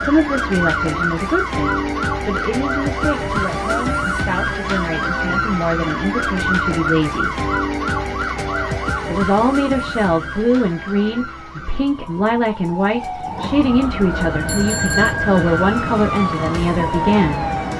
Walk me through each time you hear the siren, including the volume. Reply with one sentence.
The siren can be heard from 0.0 to 17.7 s, getting quieter then louder.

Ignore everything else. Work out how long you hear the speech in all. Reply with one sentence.
You can hear the speech for 16 seconds altogether.